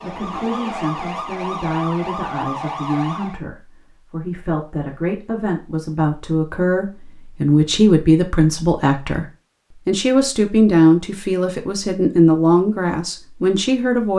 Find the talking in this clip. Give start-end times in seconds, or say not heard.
0.0-9.2, 9.8-14.1.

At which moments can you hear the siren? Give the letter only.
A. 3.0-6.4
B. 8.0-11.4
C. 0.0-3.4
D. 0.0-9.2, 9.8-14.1
C.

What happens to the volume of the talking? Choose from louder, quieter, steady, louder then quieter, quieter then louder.
louder.